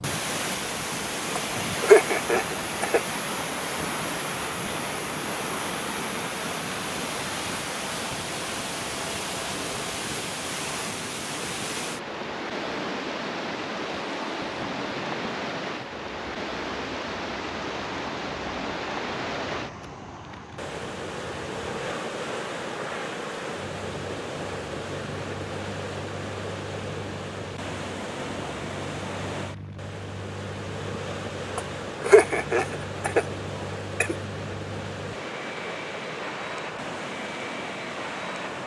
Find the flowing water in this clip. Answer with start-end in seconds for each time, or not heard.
0.0-38.6.